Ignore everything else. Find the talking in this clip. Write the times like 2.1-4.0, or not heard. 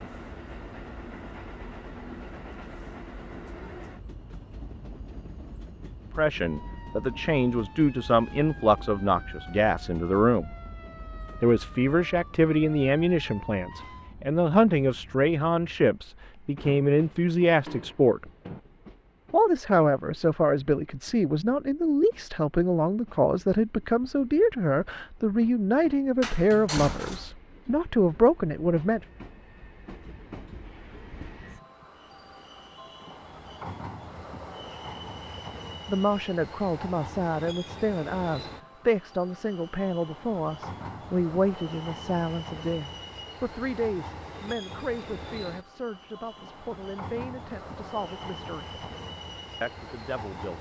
6.2-10.5, 11.4-18.2, 19.3-29.0, 35.9-48.8, 49.6-50.5.